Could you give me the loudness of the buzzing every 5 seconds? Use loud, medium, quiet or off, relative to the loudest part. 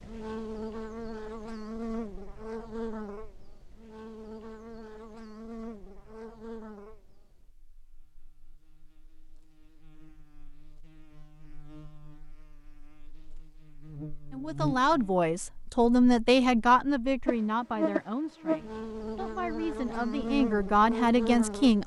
medium, quiet, medium, loud, loud.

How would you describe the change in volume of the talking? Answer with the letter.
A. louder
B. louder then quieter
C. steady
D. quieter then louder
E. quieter
D.